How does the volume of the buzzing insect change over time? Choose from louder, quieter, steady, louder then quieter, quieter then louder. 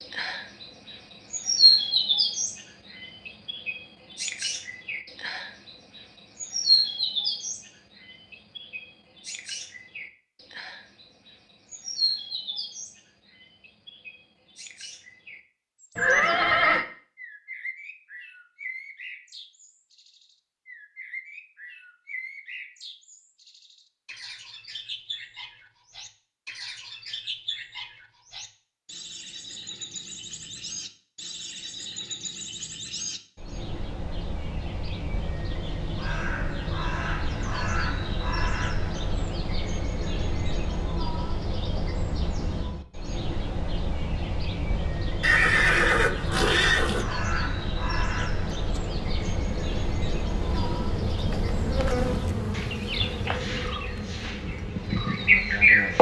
louder then quieter.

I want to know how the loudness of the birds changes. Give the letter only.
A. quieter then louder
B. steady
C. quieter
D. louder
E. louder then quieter
A.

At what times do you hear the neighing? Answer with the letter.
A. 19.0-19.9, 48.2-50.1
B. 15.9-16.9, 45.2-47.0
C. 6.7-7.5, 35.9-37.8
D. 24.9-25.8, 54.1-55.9
B.